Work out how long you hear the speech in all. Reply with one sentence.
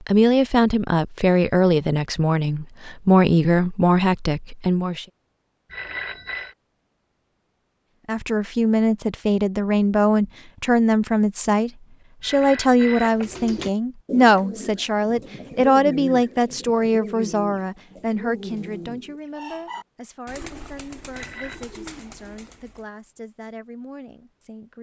You can hear the speech for 22 seconds altogether.